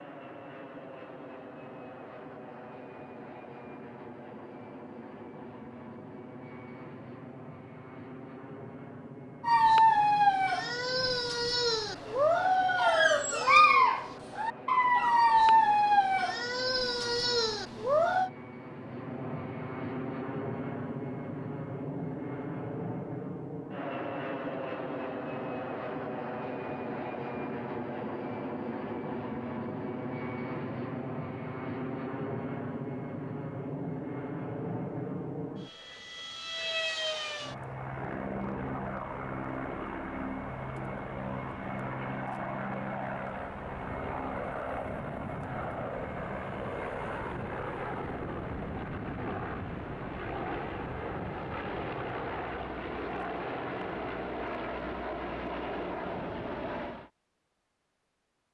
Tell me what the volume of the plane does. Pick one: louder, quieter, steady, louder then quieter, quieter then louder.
louder.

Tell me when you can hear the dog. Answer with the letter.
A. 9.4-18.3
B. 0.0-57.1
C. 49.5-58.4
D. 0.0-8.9
A.